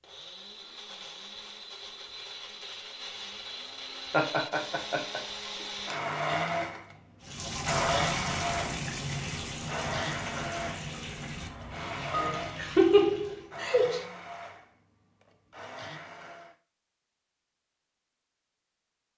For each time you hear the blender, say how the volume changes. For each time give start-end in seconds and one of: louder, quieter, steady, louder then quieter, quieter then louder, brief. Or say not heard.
0.0-16.6 louder then quieter.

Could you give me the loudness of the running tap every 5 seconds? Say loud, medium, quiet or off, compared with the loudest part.
off, loud, medium, off.